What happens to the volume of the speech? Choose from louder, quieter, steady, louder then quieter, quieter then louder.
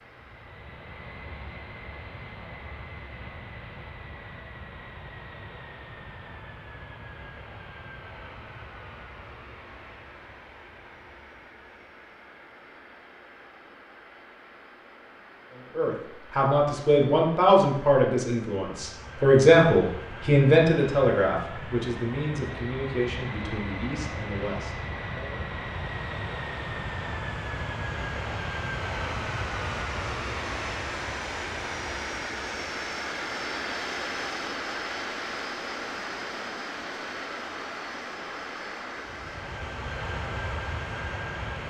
quieter.